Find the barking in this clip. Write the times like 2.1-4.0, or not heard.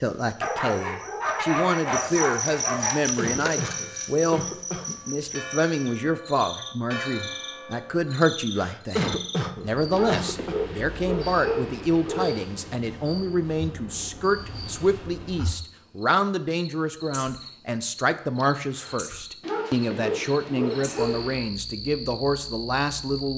0.4-3.0, 9.9-12.4, 19.4-21.5.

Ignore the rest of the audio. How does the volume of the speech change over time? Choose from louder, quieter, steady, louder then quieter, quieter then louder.
steady.